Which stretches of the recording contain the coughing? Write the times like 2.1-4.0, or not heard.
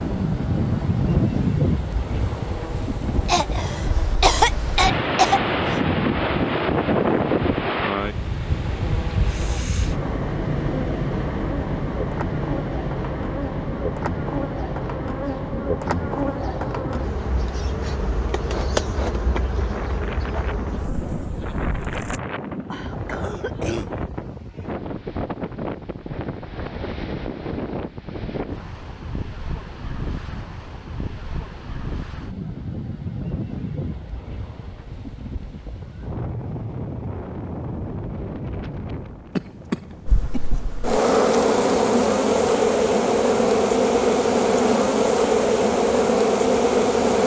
3.2-5.8, 22.6-23.9, 39.4-40.6.